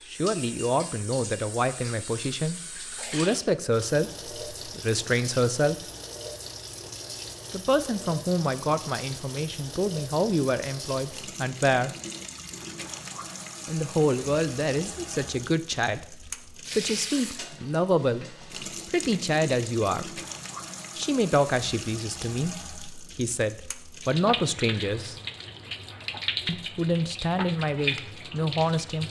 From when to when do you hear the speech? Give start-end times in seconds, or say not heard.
0.1-5.8, 7.5-11.9, 13.7-20.2, 20.9-25.1, 26.4-29.0.